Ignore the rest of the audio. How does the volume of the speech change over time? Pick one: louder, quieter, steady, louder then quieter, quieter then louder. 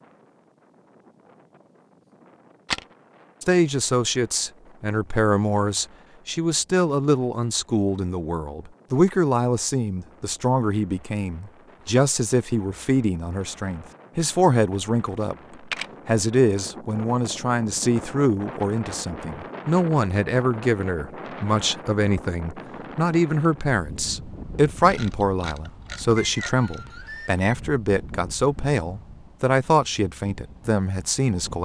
steady.